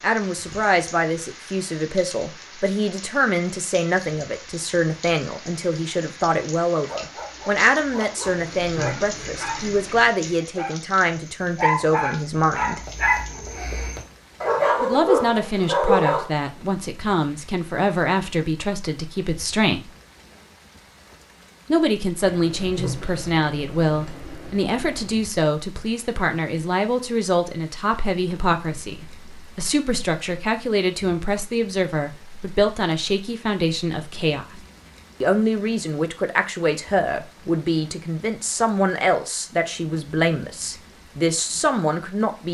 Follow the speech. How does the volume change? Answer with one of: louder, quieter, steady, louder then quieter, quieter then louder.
steady.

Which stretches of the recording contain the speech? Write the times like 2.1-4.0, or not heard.
0.0-12.8, 14.8-19.9, 21.6-34.6, 35.2-42.4.